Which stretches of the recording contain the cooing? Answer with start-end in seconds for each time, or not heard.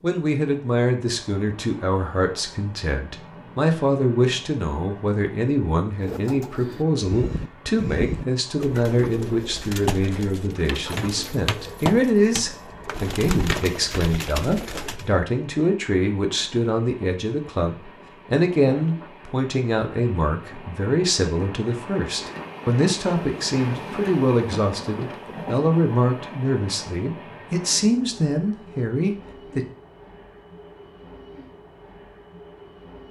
6.0-15.2.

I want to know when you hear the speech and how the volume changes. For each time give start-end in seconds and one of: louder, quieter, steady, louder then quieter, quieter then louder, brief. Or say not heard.
0.0-29.6 steady.